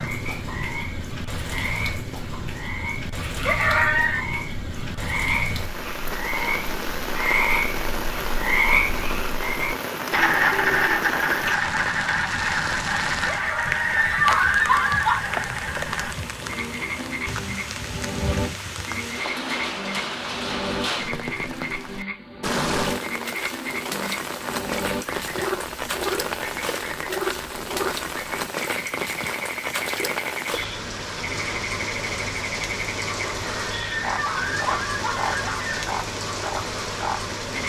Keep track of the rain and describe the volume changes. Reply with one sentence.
The loudness of the rain stays about the same.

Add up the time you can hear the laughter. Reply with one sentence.
You can hear the laughter for 5 seconds altogether.